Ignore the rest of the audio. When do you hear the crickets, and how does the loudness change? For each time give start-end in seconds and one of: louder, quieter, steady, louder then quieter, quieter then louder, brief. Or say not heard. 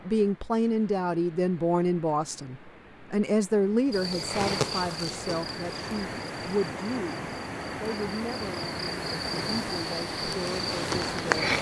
3.9-11.5 quieter then louder.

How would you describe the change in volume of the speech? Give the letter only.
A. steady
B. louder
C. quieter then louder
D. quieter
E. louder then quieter
D.